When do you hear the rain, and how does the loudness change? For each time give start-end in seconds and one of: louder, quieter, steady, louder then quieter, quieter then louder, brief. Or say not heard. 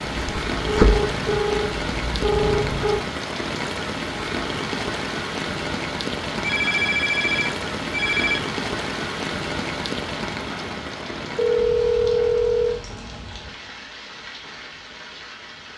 0.0-15.7 quieter.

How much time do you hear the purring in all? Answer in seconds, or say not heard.
3 s.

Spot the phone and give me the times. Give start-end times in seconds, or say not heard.
0.8-3.0, 6.4-8.4, 11.3-12.8.